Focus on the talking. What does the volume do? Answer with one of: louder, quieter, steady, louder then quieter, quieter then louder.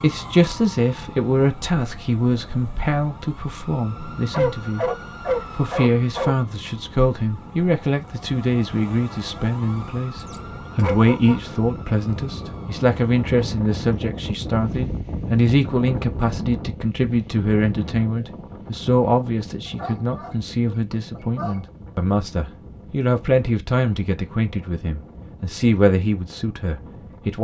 steady.